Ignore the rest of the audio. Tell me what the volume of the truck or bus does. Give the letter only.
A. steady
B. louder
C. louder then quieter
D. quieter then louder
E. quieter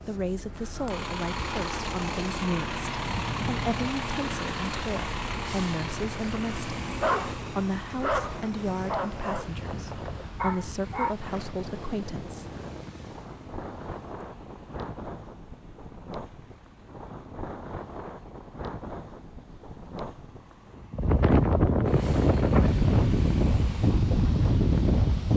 D.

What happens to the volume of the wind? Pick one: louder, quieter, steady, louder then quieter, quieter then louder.
louder.